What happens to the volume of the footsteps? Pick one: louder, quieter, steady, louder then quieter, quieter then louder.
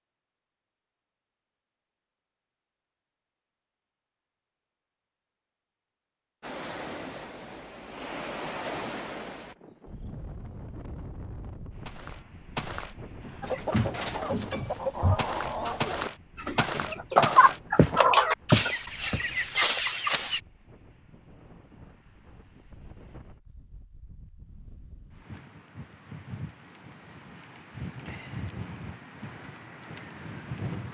louder.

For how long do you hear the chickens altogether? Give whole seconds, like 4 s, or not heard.
7 s.